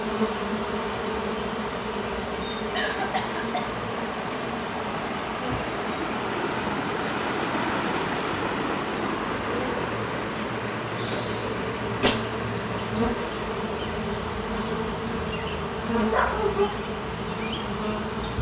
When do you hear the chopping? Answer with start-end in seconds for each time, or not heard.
not heard.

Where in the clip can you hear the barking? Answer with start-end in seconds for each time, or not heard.
16.1-16.8.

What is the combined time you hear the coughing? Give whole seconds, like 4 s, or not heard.
2 s.